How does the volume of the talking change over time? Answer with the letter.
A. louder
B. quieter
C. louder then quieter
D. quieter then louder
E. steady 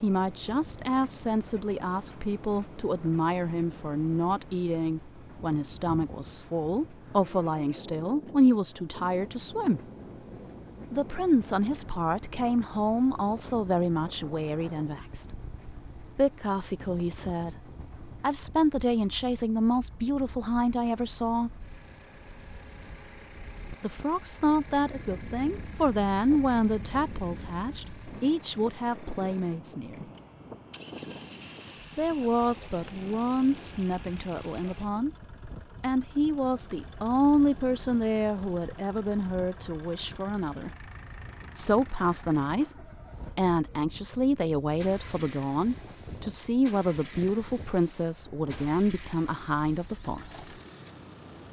E.